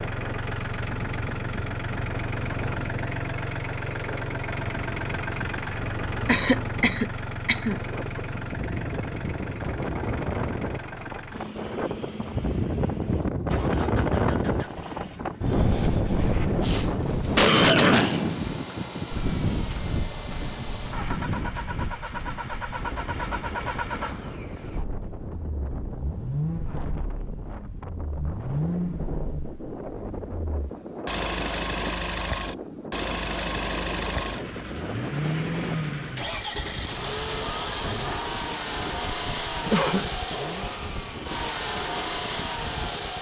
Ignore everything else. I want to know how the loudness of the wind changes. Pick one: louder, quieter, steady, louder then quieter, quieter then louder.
louder then quieter.